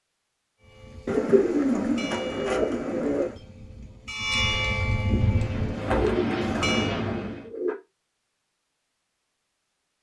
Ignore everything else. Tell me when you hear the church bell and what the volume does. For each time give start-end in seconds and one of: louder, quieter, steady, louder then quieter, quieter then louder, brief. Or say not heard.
0.6-7.0 louder then quieter.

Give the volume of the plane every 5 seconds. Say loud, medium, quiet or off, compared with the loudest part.
off, loud.